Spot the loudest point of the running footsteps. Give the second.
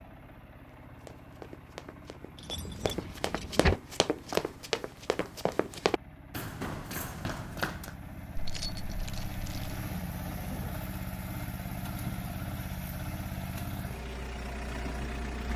4 s.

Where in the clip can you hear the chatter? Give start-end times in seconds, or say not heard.
not heard.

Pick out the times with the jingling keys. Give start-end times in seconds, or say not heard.
2.4-3.8, 8.3-9.8.